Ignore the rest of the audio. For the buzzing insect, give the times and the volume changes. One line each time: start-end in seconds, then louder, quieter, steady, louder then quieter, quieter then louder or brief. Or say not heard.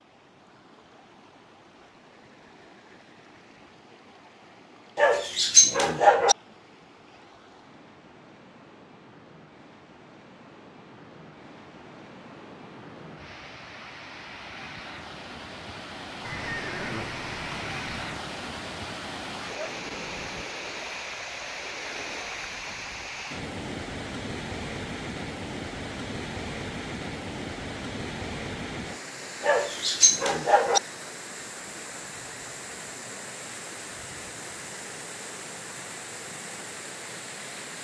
not heard.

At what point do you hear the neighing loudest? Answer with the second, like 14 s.
17 s.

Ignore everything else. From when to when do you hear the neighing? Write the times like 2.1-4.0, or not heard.
16.2-18.2.